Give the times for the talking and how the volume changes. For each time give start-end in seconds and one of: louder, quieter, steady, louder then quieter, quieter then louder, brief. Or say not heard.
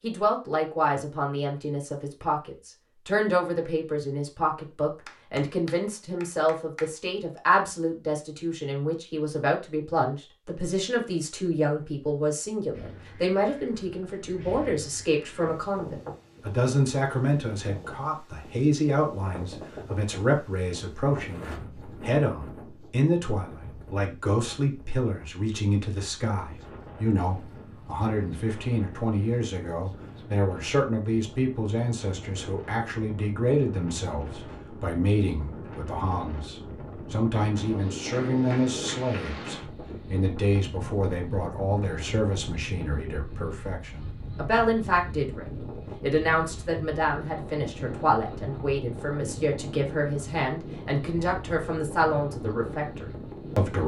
0.0-53.8 steady.